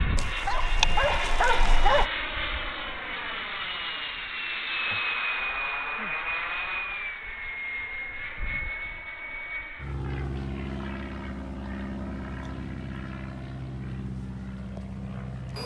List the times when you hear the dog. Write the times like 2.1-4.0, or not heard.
0.1-2.1.